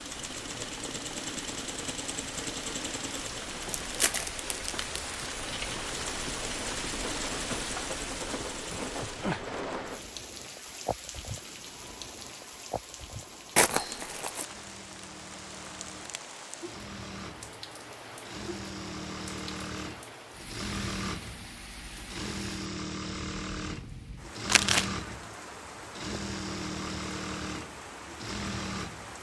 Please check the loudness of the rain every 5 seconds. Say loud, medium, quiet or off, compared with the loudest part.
medium, loud, medium, medium, medium, medium.